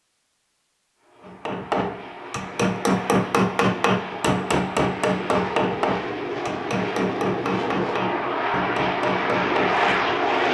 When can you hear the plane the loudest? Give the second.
10 s.